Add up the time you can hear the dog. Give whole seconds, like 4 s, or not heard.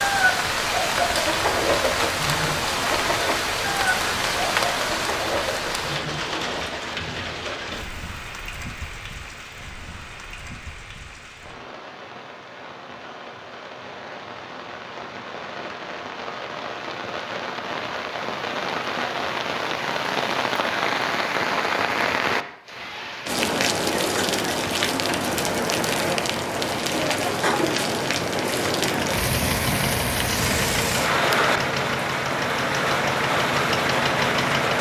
not heard.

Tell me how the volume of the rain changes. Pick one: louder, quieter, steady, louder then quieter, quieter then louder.
quieter then louder.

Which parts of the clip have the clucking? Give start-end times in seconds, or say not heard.
0.0-7.0.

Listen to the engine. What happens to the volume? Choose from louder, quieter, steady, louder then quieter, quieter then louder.
louder.